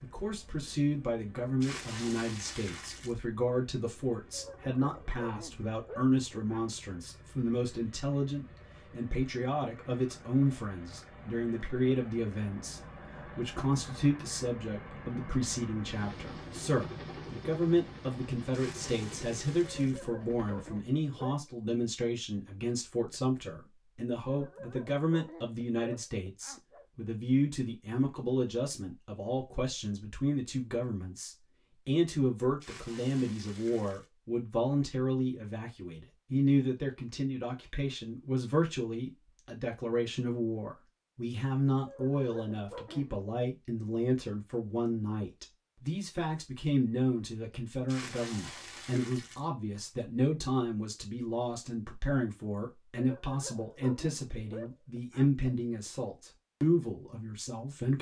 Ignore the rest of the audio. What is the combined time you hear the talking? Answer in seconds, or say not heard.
58 s.